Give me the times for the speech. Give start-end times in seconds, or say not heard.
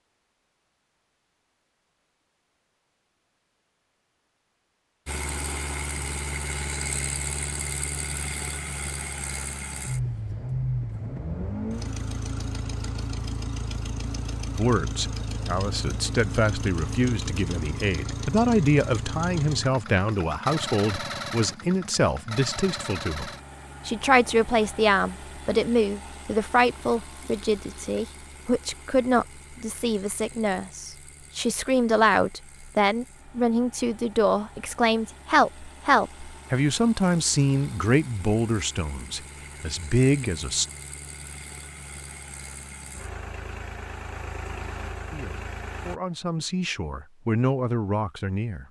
14.6-40.6, 45.1-48.6.